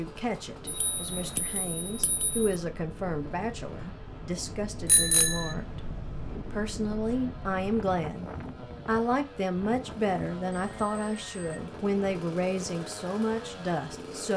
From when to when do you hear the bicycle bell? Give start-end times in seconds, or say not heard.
0.7-2.5, 4.8-5.5, 10.5-11.6.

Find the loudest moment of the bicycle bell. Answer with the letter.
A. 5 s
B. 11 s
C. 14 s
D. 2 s
A.